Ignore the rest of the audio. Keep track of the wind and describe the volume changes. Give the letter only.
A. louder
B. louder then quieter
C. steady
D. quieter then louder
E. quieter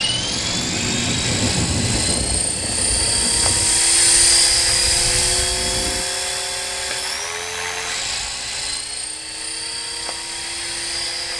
E.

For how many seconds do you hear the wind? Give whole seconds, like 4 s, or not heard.
6 s.